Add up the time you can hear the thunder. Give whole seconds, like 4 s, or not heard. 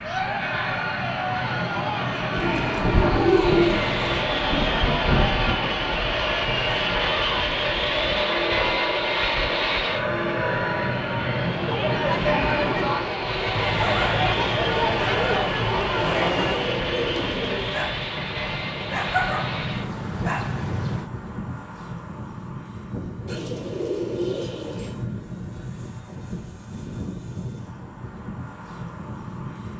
4 s.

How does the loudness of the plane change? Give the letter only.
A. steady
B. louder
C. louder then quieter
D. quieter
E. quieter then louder
D.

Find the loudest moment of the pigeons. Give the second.
3 s.